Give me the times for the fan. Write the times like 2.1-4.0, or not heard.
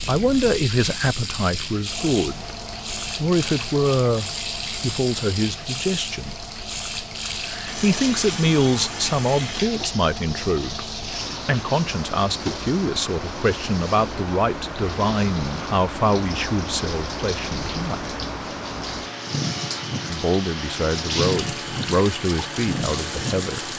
0.0-23.7.